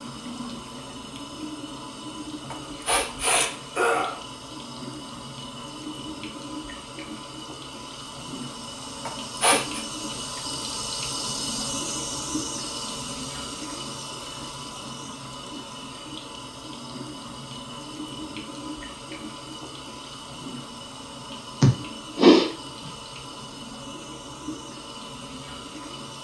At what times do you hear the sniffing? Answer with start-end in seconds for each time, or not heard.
2.5-4.2, 9.1-9.8, 21.6-22.9.